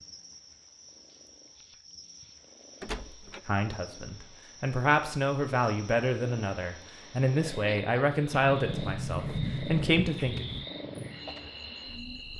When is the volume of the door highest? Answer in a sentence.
The loudest moment of the door is at 9 seconds.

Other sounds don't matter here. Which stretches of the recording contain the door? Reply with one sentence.
The door can be heard from 2.8 to 3.4 s and from 8.3 to 10.7 s.